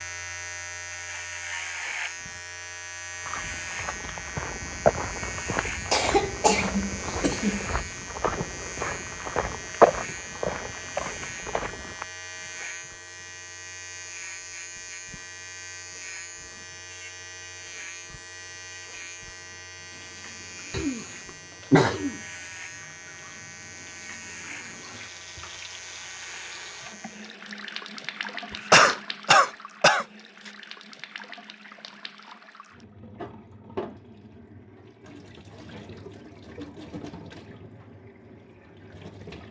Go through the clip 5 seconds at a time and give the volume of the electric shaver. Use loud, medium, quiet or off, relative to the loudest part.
loud, loud, loud, medium, medium, medium, off, off.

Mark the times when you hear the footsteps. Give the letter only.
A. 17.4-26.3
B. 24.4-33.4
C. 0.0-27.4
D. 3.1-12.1
D.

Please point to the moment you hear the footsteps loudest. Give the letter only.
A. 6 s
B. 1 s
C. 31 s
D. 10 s
D.